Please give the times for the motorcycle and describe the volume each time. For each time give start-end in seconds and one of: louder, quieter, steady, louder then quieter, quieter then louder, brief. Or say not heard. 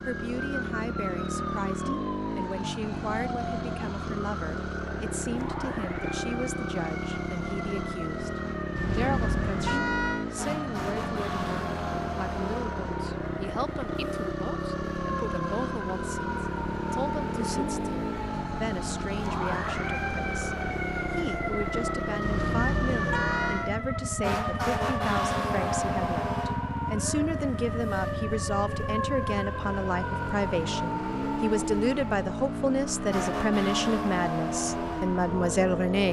0.0-36.0 steady.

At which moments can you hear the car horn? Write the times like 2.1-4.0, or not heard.
8.8-10.2, 22.2-23.7.